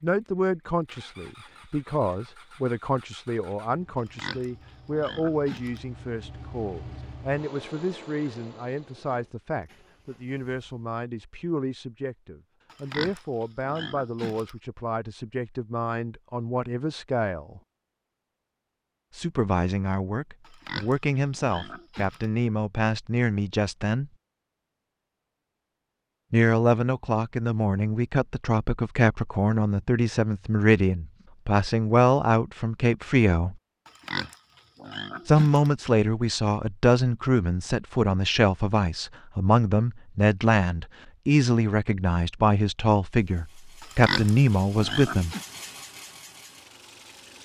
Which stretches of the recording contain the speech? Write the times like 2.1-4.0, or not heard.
0.0-17.6, 19.1-24.1, 26.3-33.5, 35.2-45.4.